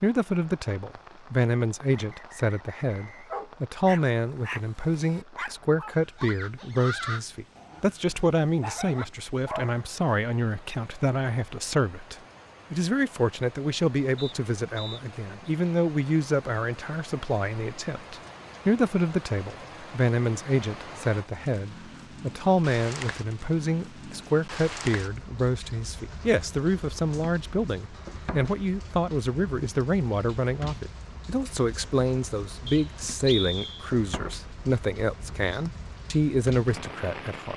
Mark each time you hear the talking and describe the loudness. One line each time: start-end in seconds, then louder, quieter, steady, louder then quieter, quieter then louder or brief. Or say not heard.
0.0-37.5 steady.